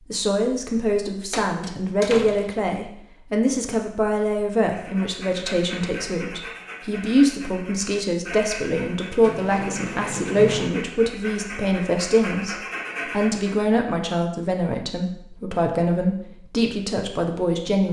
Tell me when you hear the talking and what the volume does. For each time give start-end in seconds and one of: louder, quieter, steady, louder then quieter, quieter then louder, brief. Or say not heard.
0.1-17.8 steady.